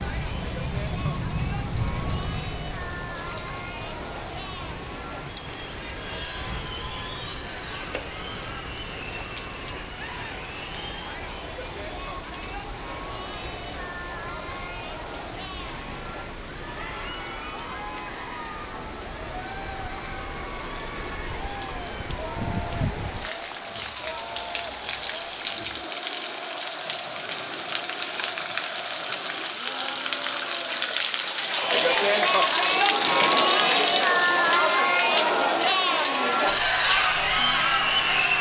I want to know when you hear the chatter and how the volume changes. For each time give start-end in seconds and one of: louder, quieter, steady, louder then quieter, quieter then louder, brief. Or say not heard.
0.0-38.3 louder.